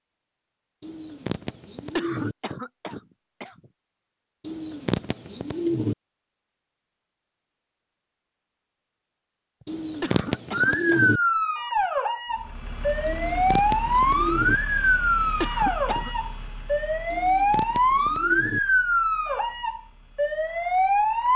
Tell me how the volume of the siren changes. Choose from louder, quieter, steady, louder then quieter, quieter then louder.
steady.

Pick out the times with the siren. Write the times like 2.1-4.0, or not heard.
10.5-21.3.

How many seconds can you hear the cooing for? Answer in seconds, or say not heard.
8 s.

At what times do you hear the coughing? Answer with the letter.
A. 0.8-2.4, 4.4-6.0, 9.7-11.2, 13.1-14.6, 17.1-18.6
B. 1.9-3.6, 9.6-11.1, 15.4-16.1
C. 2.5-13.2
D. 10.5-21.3
B.